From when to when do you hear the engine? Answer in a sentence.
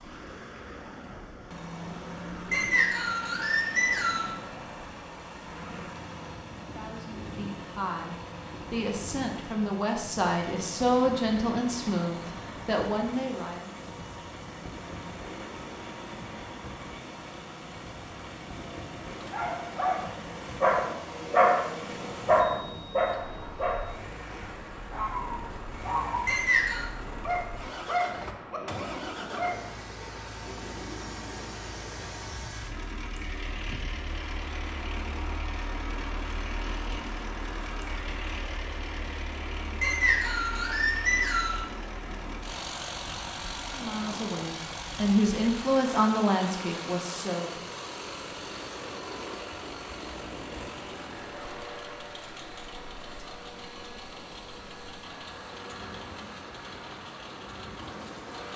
The engine can be heard from 0.0 to 58.5 s.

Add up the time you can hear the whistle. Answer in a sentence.
You can hear the whistle for 4 seconds altogether.